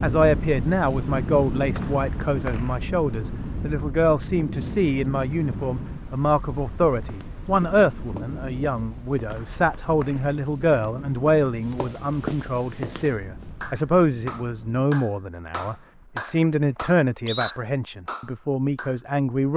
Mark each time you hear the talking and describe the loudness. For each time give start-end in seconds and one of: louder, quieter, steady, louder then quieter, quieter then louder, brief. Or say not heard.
0.0-19.5 steady.